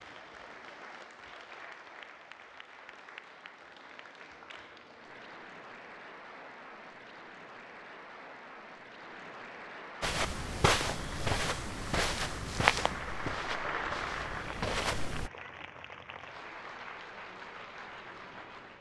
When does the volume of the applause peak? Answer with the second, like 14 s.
14 s.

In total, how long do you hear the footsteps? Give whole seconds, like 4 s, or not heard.
5 s.